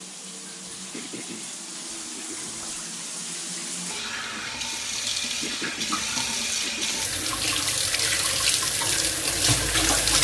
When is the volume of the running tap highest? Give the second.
10 s.